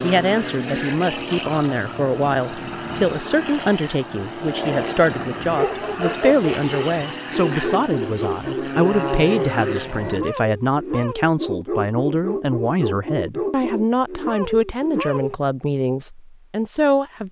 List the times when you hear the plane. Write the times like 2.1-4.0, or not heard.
0.0-10.2.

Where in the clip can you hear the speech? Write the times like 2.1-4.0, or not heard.
0.0-17.2.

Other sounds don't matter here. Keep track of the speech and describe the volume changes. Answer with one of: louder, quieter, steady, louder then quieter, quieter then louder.
steady.